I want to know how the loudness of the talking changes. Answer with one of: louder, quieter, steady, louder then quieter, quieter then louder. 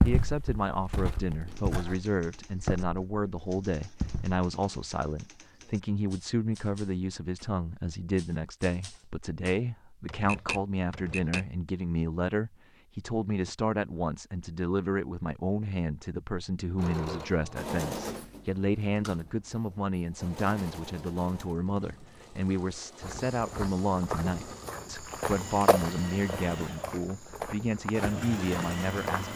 steady.